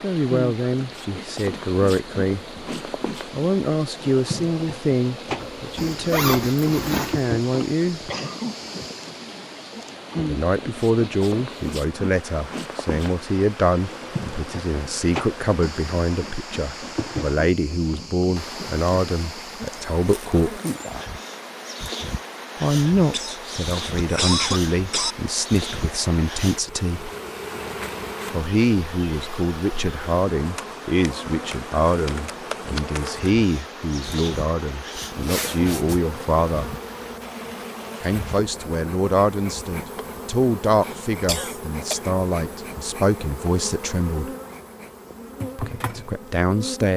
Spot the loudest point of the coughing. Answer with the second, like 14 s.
24 s.